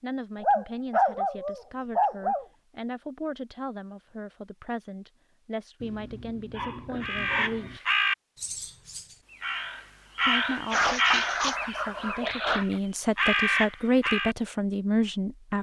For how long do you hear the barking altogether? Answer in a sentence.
The barking can be heard for 6 seconds in total.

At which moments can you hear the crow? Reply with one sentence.
The crow can be heard from 7.0 to 14.3 s.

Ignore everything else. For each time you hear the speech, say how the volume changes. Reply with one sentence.
You can hear the speech from 0.0 to 7.8 s, at a steady volume; and from 10.2 to 15.5 s, getting louder.